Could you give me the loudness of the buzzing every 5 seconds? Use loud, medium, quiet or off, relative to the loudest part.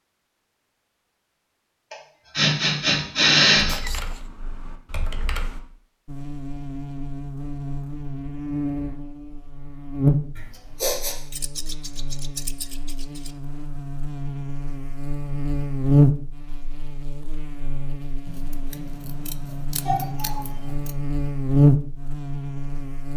off, medium, medium, loud, loud.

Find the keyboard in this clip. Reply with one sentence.
The keyboard can be heard from 3.6 to 5.6 s.